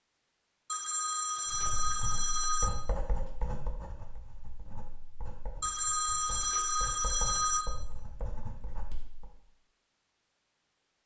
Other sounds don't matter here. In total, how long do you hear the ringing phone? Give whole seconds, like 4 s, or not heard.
4 s.